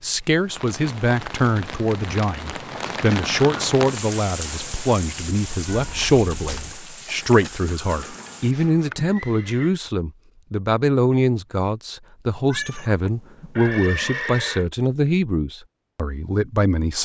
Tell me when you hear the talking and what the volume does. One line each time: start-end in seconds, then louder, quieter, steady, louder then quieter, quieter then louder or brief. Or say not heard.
0.0-16.9 steady.